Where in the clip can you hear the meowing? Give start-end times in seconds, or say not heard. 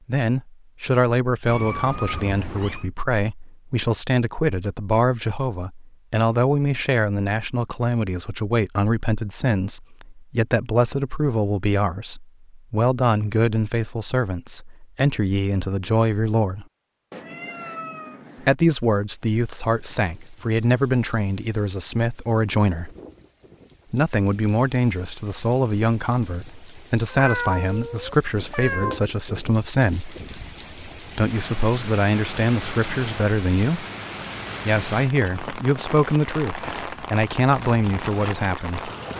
1.4-2.9, 17.1-18.6, 27.1-29.1.